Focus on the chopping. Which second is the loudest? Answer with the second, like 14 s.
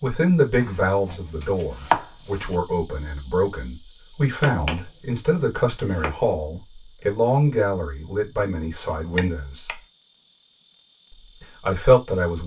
2 s.